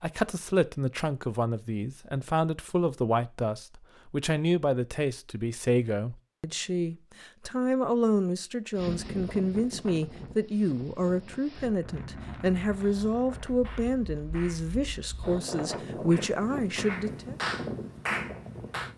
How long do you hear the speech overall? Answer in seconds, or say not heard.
17 s.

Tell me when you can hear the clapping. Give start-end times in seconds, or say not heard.
12.9-18.9.